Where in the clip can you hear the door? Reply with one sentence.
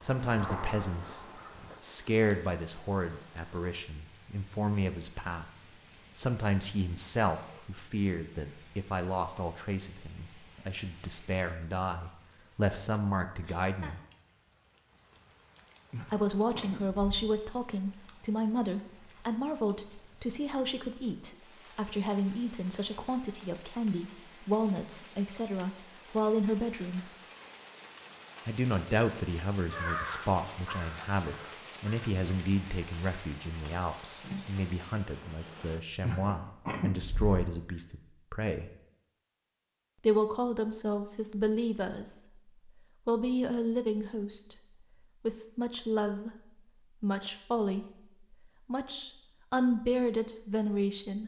The door can't be heard in this clip.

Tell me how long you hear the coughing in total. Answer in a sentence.
You can hear the coughing for 3 seconds altogether.